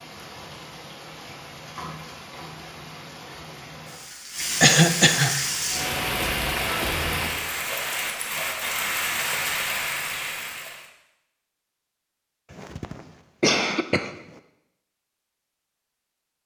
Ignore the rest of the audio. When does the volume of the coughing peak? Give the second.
5 s.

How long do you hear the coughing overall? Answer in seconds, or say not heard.
2 s.